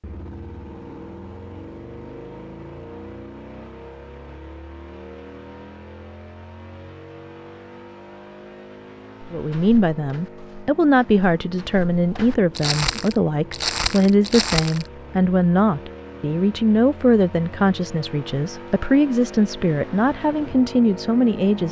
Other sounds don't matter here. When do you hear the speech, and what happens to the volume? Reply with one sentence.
You can hear the speech from 9.3 to 21.6 s, at a steady volume.